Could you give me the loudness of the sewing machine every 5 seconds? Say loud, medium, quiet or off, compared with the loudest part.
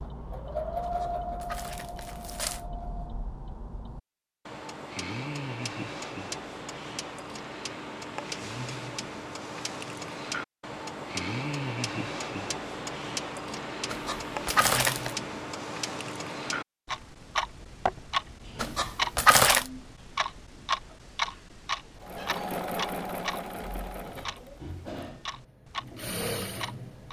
loud, off, off, off, loud, loud.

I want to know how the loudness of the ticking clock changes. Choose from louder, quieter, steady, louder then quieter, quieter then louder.
louder then quieter.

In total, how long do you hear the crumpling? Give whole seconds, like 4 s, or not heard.
4 s.